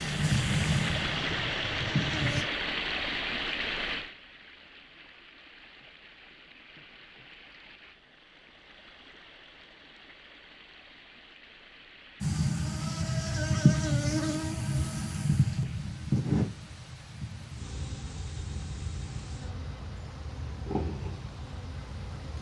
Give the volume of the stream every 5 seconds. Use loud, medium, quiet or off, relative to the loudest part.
loud, quiet, quiet, quiet, quiet.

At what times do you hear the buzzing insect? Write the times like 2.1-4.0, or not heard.
0.0-2.5, 12.2-22.3.